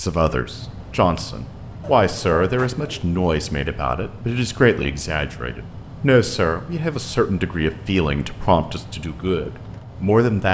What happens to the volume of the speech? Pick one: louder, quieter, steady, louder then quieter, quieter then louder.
steady.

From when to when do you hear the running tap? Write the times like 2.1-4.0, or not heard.
not heard.